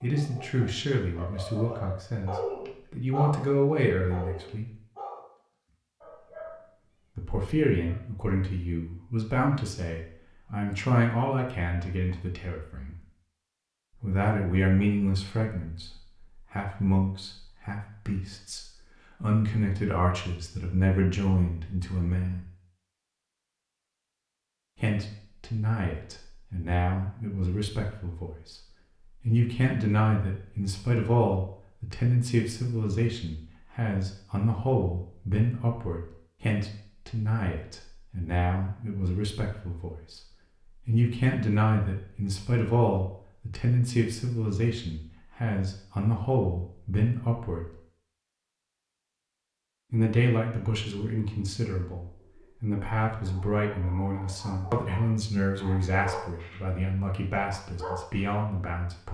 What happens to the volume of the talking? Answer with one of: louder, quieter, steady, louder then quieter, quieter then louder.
steady.